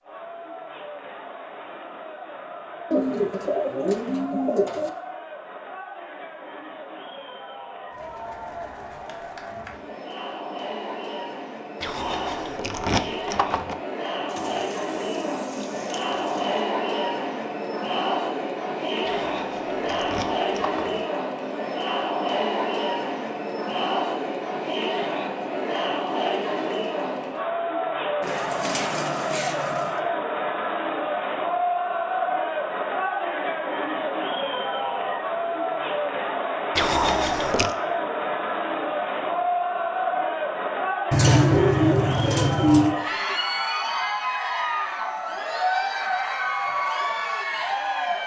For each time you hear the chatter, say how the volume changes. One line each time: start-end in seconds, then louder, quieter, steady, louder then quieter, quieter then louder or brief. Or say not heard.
0.0-48.2 louder.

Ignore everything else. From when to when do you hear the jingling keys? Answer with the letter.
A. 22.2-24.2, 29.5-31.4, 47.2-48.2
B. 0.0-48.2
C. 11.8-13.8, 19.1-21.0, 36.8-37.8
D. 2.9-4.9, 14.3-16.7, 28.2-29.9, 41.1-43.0
C.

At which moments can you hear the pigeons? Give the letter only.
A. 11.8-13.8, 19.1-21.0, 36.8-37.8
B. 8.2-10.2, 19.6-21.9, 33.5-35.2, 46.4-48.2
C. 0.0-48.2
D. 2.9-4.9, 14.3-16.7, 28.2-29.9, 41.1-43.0
D.